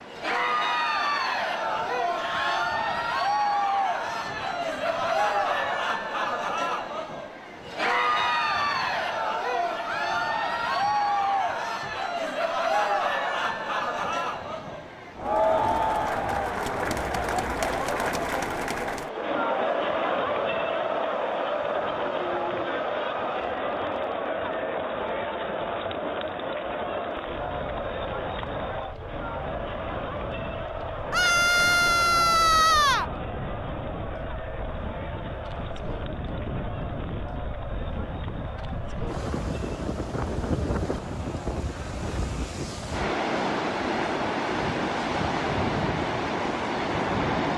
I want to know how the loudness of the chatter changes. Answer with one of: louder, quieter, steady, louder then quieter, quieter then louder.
quieter.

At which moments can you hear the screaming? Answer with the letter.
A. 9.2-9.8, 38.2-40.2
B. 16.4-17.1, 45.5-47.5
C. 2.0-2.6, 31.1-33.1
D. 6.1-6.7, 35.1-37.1
C.